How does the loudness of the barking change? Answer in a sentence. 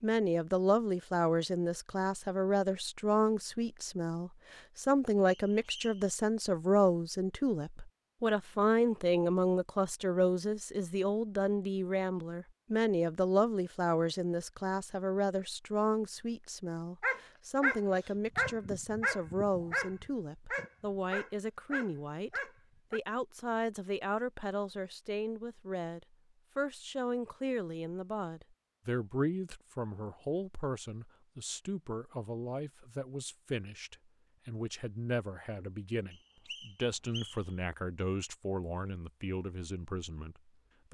The volume of the barking goes down.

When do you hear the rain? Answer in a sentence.
The rain can't be heard in this clip.